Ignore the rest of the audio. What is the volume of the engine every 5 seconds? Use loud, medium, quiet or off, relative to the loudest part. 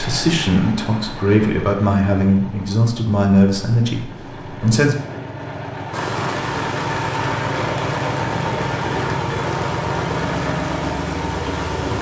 medium, loud, loud.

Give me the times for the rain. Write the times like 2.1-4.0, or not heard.
5.9-11.9.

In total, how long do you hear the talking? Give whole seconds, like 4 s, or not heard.
5 s.